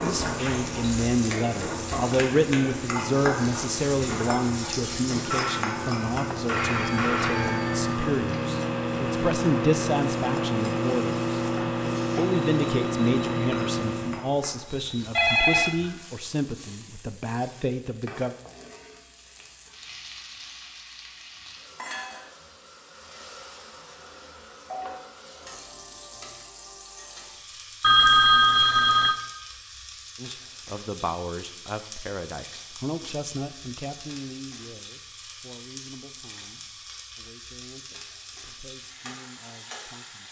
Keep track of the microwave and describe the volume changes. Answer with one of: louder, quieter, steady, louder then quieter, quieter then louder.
louder.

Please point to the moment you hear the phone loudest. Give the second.
28 s.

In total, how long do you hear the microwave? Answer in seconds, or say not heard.
14 s.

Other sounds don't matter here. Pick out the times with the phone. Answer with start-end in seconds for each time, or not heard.
5.3-7.9, 15.2-15.8, 27.8-29.1.